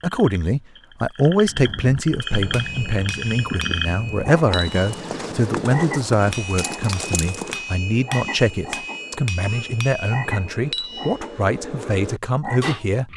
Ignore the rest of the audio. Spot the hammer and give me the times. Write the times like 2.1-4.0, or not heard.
2.2-12.8.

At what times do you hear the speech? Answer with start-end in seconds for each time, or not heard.
0.0-13.1.